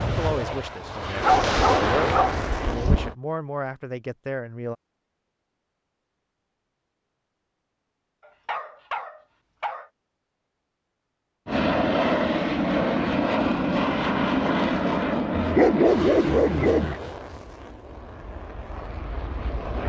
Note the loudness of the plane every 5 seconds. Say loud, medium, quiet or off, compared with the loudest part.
medium, off, loud, medium.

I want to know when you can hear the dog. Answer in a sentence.
You can hear the dog from 1.2 to 3.0 s, from 8.2 to 9.9 s and from 15.3 to 16.9 s.